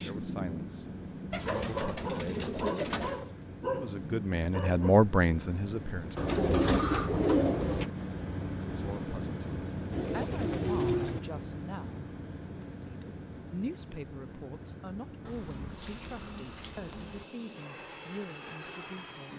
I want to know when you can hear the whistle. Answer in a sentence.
You can't hear the whistle here.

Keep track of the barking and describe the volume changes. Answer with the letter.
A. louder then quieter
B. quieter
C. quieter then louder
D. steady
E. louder
D.